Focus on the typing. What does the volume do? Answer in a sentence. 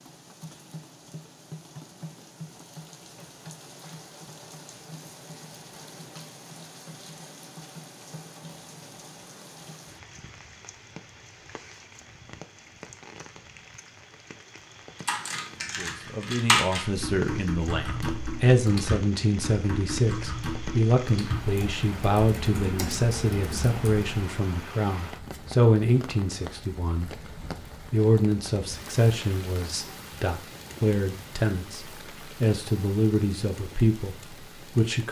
The volume of the typing goes down.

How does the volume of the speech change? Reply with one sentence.
The volume of the speech stays about the same.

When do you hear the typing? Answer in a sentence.
You can hear the typing from 15.1 to 24.3 s.